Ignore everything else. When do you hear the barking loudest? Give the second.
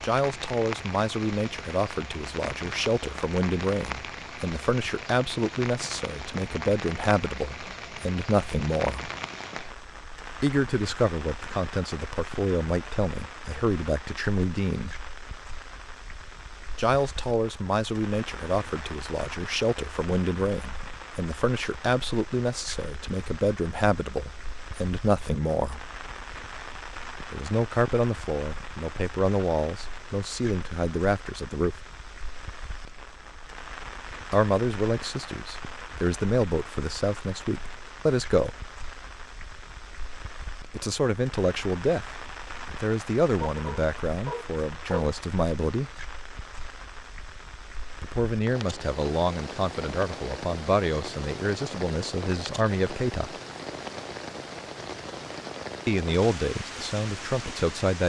45 s.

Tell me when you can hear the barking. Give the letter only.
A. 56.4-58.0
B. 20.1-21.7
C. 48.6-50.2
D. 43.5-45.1
D.